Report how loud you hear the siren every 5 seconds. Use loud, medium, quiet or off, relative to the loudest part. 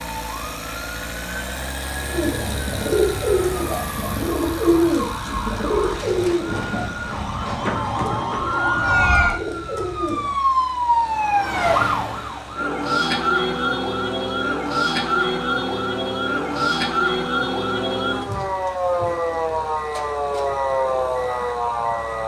quiet, loud, loud, loud, loud.